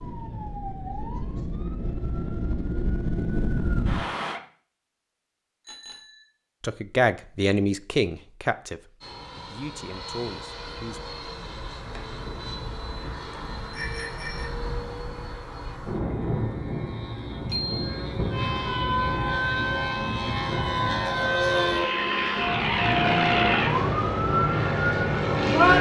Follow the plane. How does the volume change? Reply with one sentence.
The volume of the plane goes up.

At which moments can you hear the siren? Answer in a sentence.
You can hear the siren from 0.0 to 4.4 s and from 18.3 to 25.7 s.